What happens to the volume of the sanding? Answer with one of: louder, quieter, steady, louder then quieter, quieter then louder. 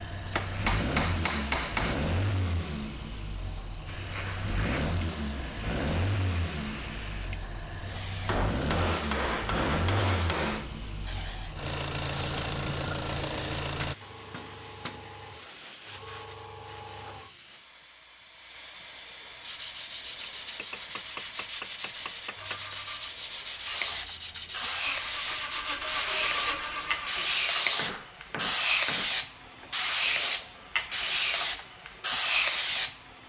steady.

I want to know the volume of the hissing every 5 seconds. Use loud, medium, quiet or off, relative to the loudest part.
quiet, quiet, quiet, quiet, medium, loud, loud.